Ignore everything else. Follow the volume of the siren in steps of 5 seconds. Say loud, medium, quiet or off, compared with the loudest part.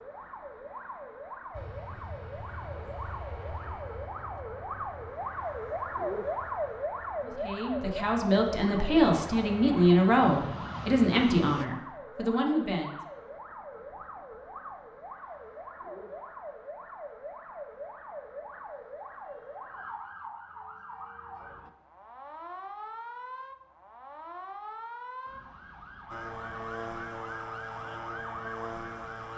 medium, loud, medium, medium, medium, medium.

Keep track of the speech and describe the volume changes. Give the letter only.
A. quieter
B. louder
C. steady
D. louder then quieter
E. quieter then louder
D.